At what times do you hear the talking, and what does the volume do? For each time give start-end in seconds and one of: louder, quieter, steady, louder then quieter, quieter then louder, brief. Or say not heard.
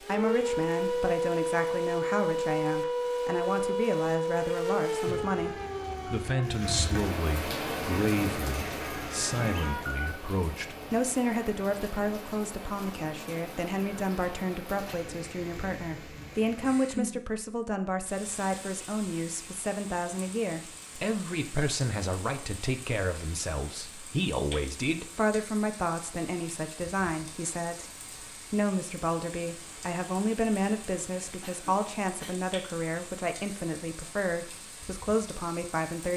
0.1-27.9 steady
28.5-36.1 steady.